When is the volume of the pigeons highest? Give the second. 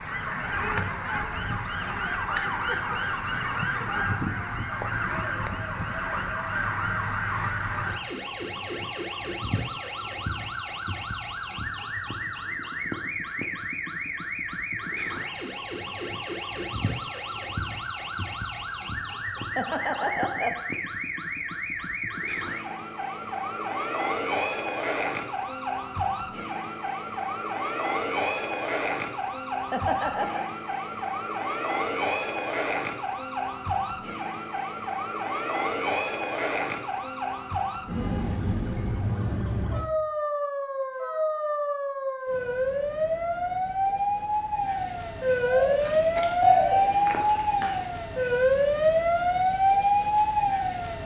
47 s.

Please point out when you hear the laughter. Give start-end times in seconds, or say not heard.
19.4-20.6, 29.5-30.4.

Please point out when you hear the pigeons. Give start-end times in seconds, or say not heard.
45.5-47.9.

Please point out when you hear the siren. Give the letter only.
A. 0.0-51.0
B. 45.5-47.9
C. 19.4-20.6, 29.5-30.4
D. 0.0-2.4
A.